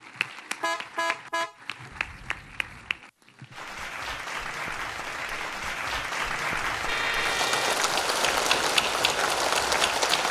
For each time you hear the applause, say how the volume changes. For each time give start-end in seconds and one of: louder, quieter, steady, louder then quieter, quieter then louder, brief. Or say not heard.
0.0-10.2 louder.